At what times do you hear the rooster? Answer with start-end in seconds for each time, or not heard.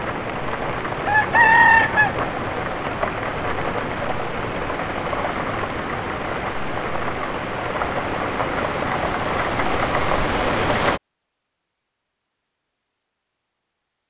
1.1-2.2.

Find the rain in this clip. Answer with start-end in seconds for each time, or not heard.
0.0-11.0.